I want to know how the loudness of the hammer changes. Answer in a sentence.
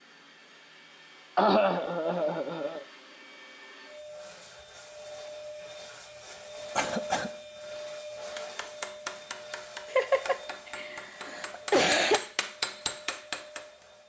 The loudness of the hammer goes down, then up.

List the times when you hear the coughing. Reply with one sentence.
You can hear the coughing from 1.4 to 2.9 s, from 6.8 to 7.3 s and from 9.9 to 12.2 s.